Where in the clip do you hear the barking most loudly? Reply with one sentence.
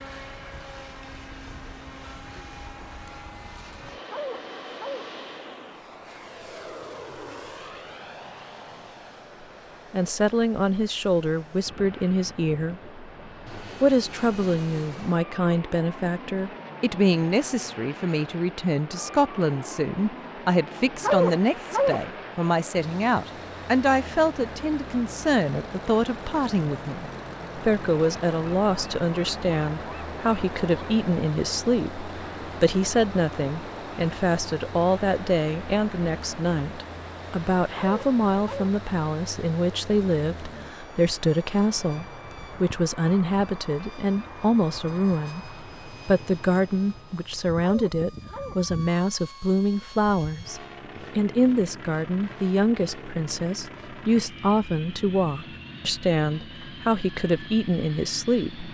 The loudest moment of the barking is at 21 seconds.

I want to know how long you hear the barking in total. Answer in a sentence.
The barking can be heard for 4 seconds in total.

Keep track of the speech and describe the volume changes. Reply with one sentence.
The volume of the speech stays about the same.